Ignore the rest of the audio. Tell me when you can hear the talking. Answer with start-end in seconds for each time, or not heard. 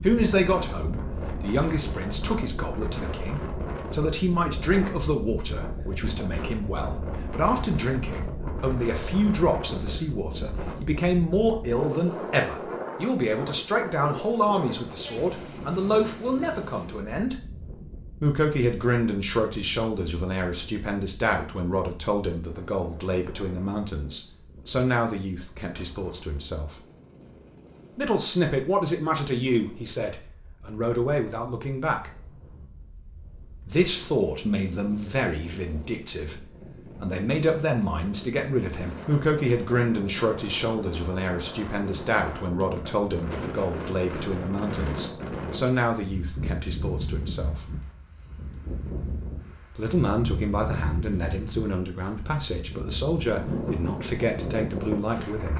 0.0-17.4, 18.2-26.8, 27.9-32.1, 33.6-47.6, 49.8-55.5.